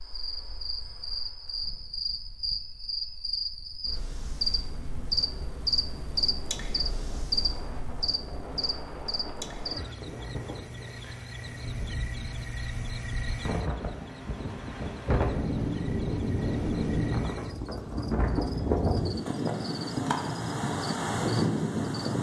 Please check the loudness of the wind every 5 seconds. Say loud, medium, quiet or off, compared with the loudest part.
quiet, quiet, medium, loud, loud.